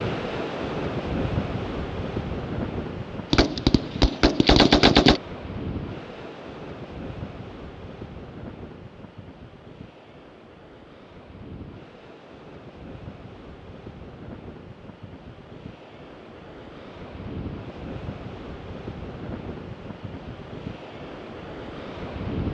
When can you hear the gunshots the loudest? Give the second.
5 s.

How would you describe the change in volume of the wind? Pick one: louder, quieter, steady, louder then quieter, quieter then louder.
quieter then louder.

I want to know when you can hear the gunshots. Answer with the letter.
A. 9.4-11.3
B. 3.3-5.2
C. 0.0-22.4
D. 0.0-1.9
B.